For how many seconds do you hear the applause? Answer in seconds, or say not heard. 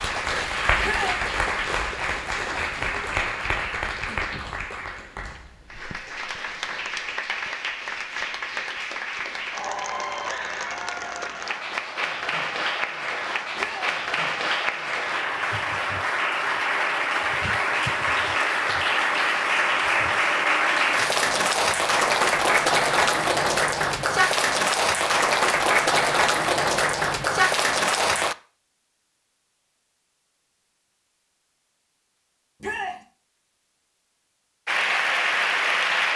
30 s.